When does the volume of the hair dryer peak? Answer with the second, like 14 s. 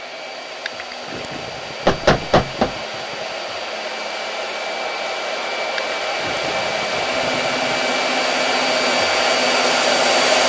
10 s.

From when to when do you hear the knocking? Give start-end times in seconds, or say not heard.
1.9-2.7.